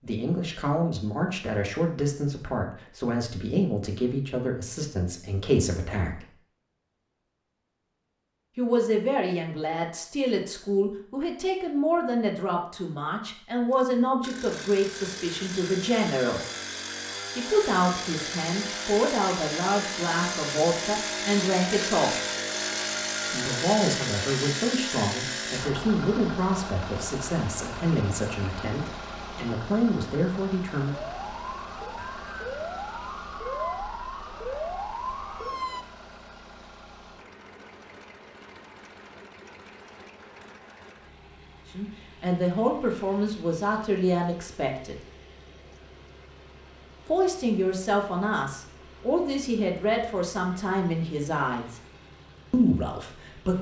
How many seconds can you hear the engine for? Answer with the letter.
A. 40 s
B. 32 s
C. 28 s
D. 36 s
A.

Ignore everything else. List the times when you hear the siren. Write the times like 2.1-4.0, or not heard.
30.9-35.9.